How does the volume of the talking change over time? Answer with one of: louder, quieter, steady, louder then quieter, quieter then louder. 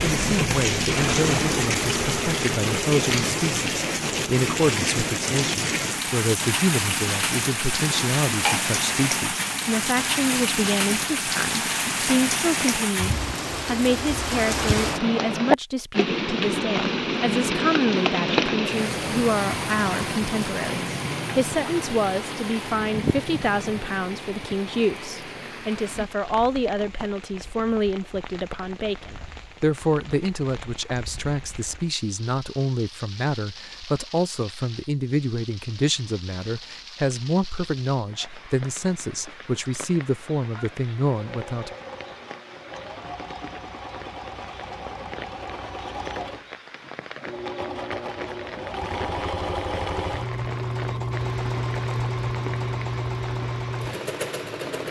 steady.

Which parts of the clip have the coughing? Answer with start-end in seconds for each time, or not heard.
7.8-8.7.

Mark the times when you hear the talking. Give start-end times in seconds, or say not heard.
0.1-41.7.